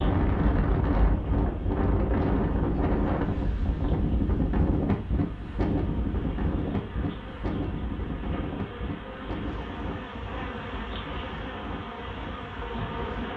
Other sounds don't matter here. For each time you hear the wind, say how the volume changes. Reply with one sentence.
You can hear the wind from 0.0 to 13.3 s, getting quieter.